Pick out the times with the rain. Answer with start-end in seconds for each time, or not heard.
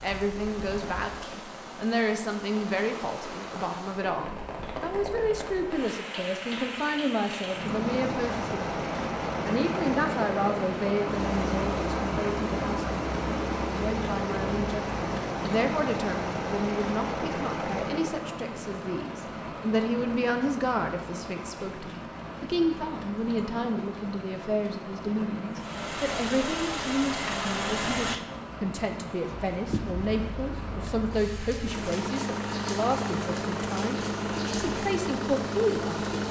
0.0-36.2.